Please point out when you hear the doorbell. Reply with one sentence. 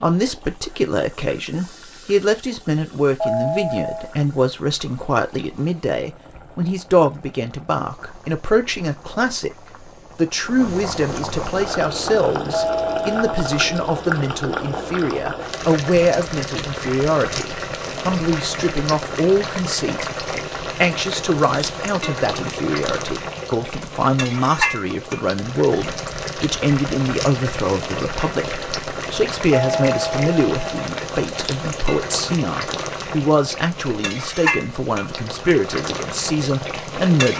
You can hear the doorbell from 3.2 to 4.2 s, from 12.5 to 13.7 s and from 29.5 to 30.9 s.